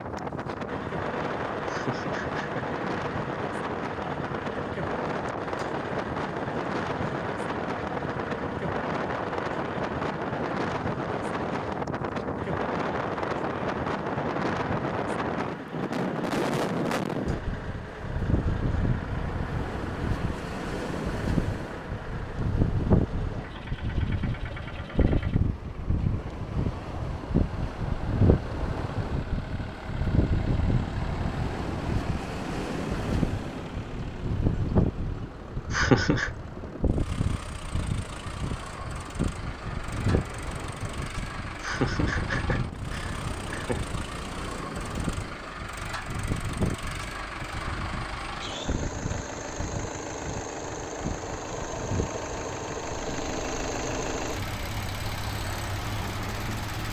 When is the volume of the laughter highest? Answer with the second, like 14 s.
36 s.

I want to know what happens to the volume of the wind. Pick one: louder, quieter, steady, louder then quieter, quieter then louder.
quieter.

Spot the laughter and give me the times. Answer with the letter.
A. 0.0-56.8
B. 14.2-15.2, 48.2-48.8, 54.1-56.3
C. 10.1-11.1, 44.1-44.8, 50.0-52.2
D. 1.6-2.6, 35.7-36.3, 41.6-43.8
D.